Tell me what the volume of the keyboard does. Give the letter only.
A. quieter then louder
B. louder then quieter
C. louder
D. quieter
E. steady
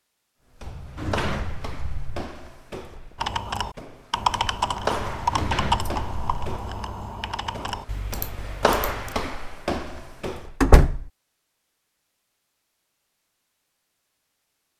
D.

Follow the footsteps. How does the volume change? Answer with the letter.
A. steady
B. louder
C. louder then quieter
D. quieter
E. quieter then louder
E.